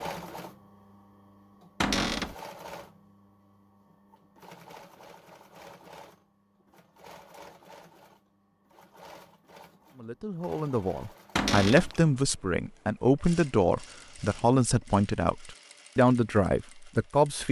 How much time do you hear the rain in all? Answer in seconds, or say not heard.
not heard.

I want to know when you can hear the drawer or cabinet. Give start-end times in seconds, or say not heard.
1.8-2.4, 11.3-11.9.